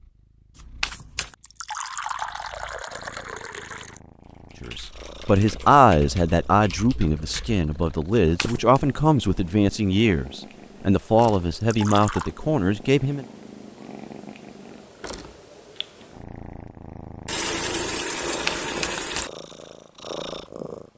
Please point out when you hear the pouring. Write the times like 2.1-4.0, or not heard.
1.4-4.0, 11.5-12.3, 17.2-19.3.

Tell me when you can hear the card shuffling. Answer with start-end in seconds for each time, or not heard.
0.6-1.4, 8.2-8.8, 18.2-19.3.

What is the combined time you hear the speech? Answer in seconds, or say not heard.
9 s.